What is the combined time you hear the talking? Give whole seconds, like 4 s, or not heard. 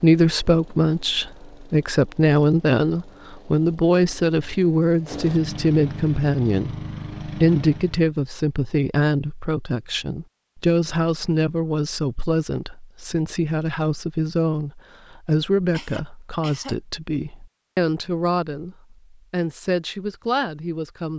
21 s.